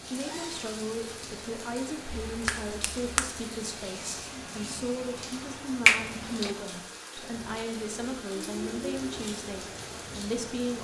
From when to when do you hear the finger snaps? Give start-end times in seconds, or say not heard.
2.2-3.3, 5.8-6.5.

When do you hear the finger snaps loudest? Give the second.
6 s.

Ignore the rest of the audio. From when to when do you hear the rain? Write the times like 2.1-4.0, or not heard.
0.0-10.7.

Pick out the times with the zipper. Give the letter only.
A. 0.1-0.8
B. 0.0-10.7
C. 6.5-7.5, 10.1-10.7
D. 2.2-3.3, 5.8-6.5
A.